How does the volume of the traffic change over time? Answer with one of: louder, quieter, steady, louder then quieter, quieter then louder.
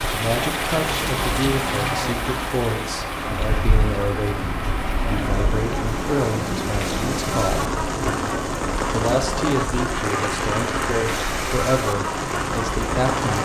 steady.